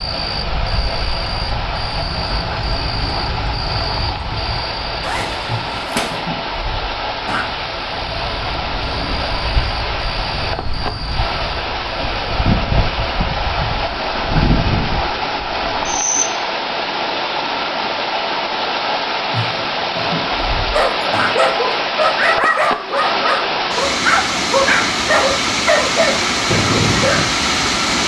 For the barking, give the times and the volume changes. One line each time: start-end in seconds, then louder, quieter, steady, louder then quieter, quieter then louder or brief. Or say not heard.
20.7-27.4 steady.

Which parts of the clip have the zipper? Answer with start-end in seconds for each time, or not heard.
5.0-6.2.